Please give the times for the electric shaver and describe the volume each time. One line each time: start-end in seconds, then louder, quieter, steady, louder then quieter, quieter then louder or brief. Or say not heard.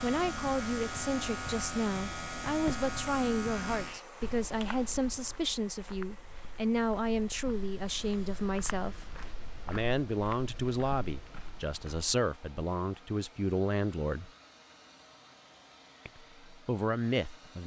0.0-4.0 steady.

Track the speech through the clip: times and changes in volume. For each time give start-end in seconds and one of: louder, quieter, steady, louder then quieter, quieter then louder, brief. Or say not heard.
0.0-14.3 steady
16.1-17.6 brief.